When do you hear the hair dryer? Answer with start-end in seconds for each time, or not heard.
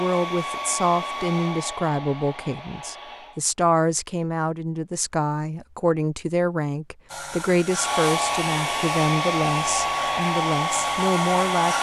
0.0-3.4, 7.7-11.7.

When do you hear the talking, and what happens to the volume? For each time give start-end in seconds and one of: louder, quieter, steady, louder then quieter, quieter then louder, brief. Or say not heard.
0.0-11.7 steady.